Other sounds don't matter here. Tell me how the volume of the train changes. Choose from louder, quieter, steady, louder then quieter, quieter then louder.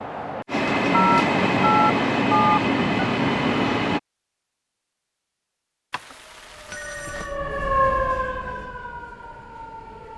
steady.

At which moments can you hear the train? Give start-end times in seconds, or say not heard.
0.0-4.0.